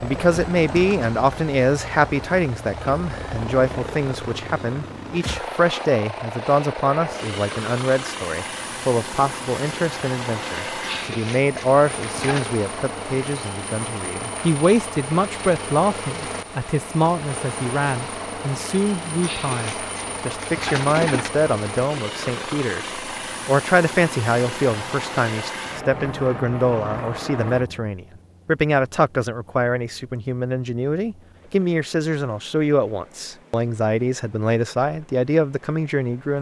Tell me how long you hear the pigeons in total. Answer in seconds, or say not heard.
4 s.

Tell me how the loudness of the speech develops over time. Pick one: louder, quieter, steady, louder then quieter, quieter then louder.
steady.